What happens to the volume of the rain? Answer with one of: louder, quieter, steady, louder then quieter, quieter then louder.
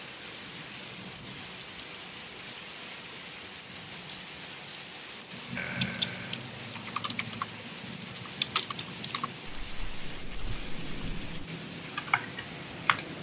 steady.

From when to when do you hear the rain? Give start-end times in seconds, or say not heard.
0.0-13.1.